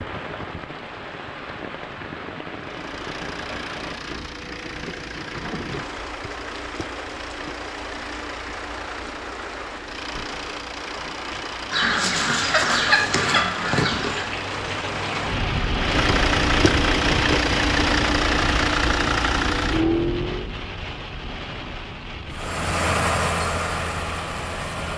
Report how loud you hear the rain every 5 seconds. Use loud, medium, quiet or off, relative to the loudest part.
medium, medium, medium, loud, medium.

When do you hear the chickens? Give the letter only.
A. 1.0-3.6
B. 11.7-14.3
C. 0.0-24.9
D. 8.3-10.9
B.